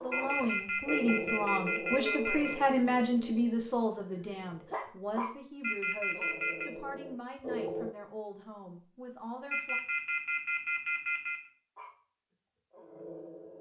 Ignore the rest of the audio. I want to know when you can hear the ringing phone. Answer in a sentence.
The ringing phone can be heard from 0.1 to 2.5 s, from 5.6 to 6.7 s and from 9.5 to 11.5 s.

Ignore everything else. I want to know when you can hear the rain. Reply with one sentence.
You can't hear the rain here.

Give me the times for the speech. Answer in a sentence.
You can hear the speech from 0.0 to 9.8 s.